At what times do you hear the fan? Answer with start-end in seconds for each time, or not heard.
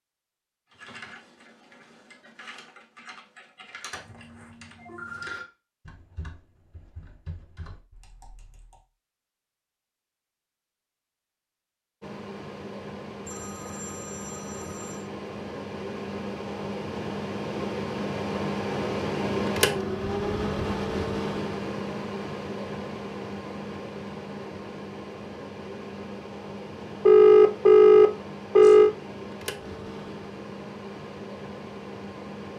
12.0-32.5.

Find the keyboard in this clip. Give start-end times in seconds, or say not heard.
0.7-8.8.